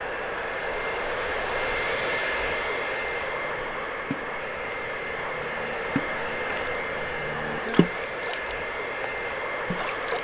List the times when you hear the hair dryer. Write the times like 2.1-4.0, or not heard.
0.0-10.2.